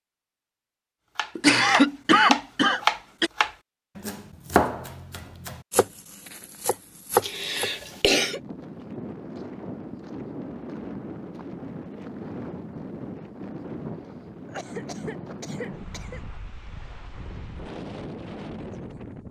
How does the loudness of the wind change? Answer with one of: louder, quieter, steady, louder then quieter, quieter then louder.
steady.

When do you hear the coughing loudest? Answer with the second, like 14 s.
2 s.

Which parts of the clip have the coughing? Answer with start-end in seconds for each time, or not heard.
1.4-3.3, 7.2-8.4, 14.4-16.2.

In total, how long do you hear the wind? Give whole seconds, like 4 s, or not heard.
11 s.